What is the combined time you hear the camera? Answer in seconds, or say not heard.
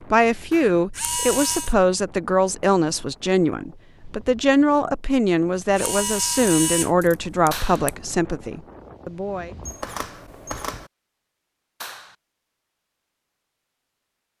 4 s.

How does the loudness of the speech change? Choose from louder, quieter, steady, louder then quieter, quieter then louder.
steady.